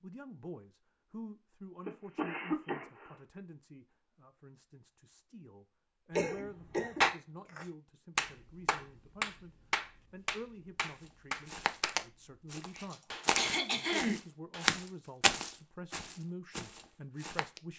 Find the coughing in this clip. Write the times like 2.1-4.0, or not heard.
1.9-3.2, 6.2-7.0, 12.9-14.2.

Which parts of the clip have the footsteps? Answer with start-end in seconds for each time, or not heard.
10.8-17.6.